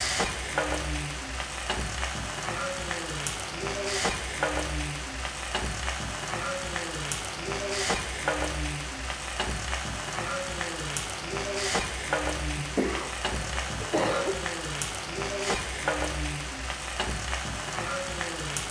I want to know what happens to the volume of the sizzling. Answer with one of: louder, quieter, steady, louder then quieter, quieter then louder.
steady.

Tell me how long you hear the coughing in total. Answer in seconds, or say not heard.
2 s.